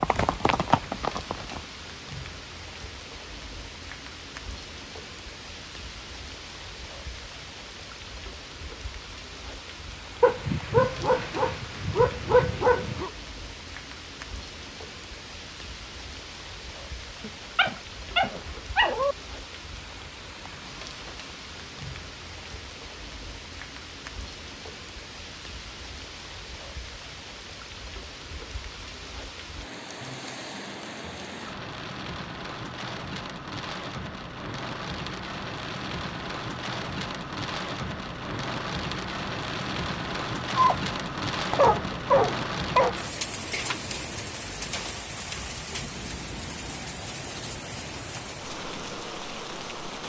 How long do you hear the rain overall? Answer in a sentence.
The rain can be heard for 50 seconds in total.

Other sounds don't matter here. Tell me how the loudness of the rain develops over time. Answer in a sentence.
The loudness of the rain goes up.